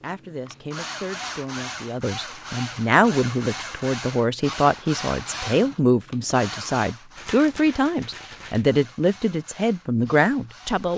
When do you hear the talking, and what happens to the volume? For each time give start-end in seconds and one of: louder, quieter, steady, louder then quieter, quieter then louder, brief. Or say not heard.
0.0-10.9 louder.